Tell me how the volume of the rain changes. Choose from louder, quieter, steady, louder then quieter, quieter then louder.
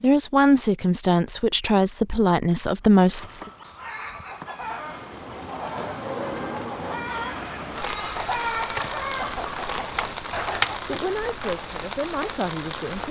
steady.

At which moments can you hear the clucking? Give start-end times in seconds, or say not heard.
3.0-11.0.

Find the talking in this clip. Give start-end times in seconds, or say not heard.
0.0-3.5, 10.8-13.0.